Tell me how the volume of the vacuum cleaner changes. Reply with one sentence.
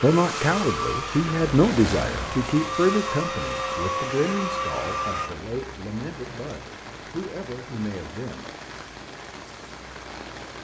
The volume of the vacuum cleaner goes down, then up.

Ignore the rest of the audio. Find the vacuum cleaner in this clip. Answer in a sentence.
The vacuum cleaner can be heard from 0.0 to 5.3 s.